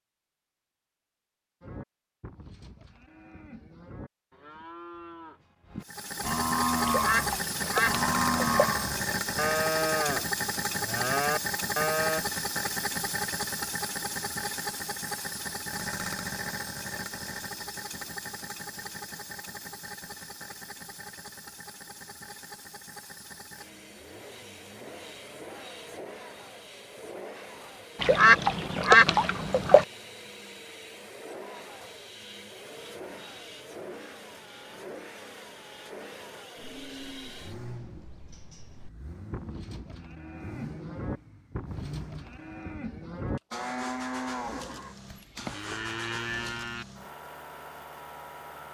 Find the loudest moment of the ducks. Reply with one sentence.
The loudest moment of the ducks is at 29 seconds.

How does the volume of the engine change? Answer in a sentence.
The loudness of the engine goes down.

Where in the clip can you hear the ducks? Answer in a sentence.
You can hear the ducks from 6.8 to 8.7 s and from 28.0 to 29.9 s.